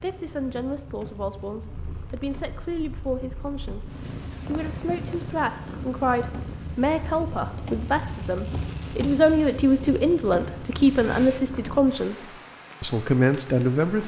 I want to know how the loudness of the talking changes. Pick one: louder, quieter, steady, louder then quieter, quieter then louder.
louder.